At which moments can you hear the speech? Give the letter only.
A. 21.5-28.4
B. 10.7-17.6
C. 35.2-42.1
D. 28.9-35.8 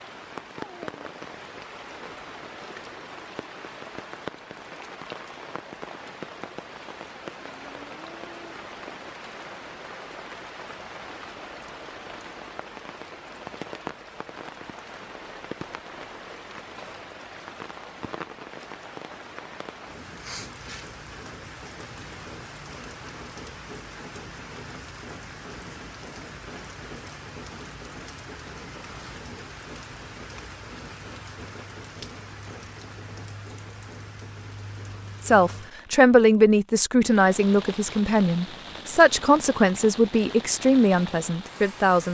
C.